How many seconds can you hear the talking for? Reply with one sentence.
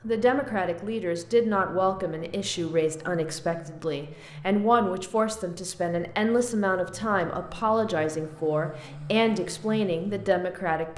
The talking can be heard for 11 seconds in total.